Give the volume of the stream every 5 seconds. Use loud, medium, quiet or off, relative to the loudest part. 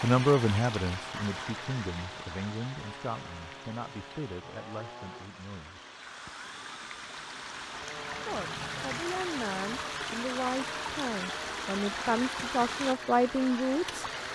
medium, loud, loud.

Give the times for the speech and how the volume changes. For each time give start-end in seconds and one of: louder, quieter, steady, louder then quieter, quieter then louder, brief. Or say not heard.
0.0-5.8 quieter
8.1-14.1 louder.